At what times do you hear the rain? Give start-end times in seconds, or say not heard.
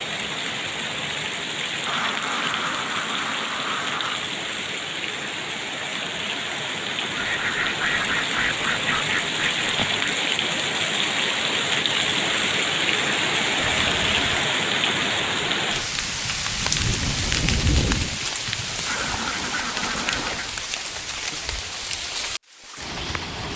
0.0-23.5.